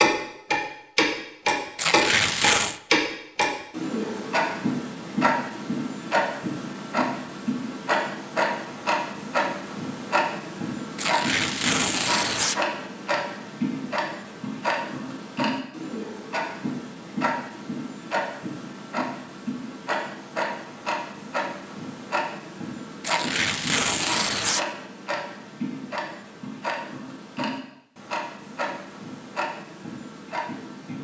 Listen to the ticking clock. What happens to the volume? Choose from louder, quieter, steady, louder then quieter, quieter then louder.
quieter.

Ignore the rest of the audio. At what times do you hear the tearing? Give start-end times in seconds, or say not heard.
1.8-2.8, 10.9-12.6, 23.0-24.6.